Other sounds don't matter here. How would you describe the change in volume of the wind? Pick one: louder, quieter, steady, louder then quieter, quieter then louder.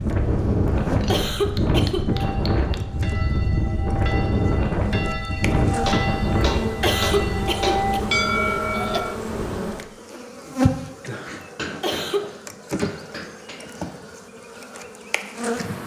quieter.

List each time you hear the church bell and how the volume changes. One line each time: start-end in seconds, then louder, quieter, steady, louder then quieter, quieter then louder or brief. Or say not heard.
2.0-9.2 louder.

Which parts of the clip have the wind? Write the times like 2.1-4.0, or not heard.
0.0-9.8.